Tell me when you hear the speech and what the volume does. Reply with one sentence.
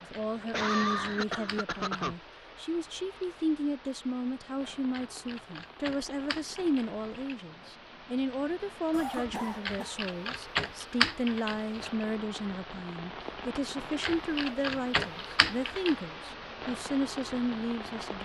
You can hear the speech from 0.0 to 18.2 s, at a steady volume.